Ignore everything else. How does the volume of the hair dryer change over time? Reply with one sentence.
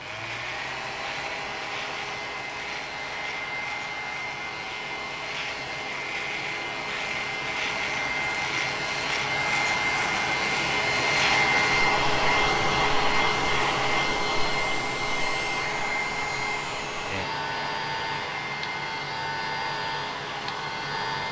The loudness of the hair dryer goes up, then down.